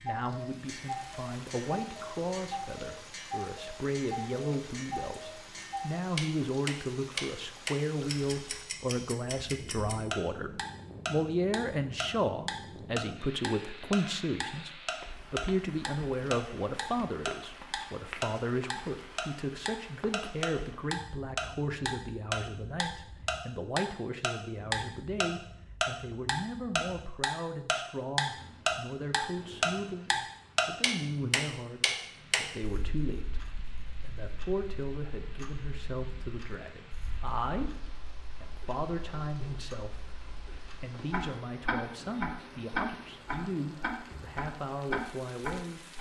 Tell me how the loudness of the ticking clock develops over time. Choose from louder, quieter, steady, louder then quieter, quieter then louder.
louder then quieter.